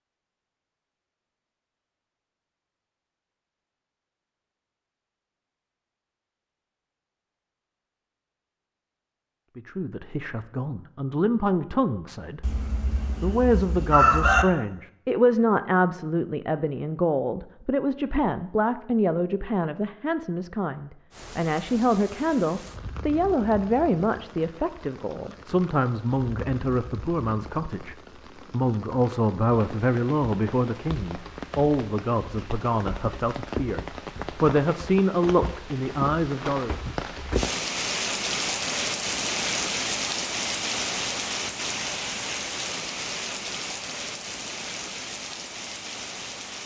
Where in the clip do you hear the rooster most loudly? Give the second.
14 s.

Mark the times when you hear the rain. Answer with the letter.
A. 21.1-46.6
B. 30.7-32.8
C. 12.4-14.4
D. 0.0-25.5
A.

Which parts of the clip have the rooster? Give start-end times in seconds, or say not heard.
12.4-14.4.